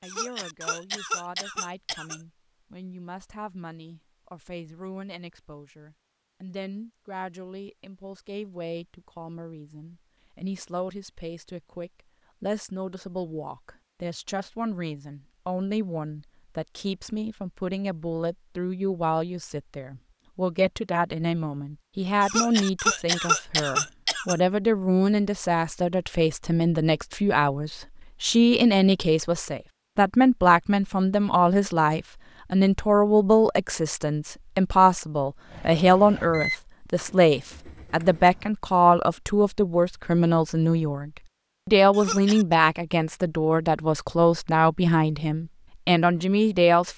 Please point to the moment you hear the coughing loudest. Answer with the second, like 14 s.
23 s.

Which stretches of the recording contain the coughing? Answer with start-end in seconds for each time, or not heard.
0.0-2.2, 22.2-24.4, 41.9-42.5.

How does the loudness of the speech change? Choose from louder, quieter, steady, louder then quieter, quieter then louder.
louder.